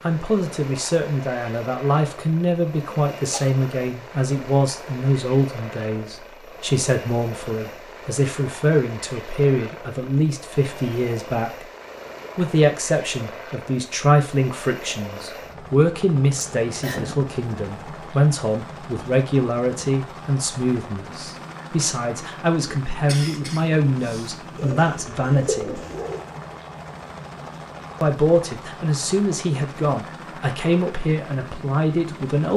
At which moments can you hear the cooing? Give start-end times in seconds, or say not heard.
24.6-26.2.